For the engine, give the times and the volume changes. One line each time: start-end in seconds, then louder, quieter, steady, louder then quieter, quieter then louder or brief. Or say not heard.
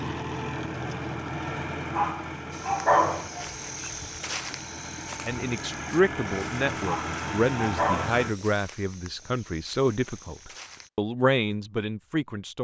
0.0-8.3 quieter then louder.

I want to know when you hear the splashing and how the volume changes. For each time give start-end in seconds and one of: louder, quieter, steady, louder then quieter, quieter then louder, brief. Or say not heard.
not heard.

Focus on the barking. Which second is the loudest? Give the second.
3 s.